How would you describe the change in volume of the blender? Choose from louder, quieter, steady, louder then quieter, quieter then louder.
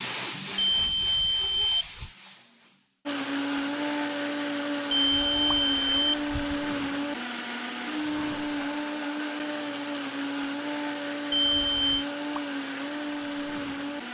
steady.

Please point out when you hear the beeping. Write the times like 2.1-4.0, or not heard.
0.6-2.1, 4.9-6.6, 11.3-12.1.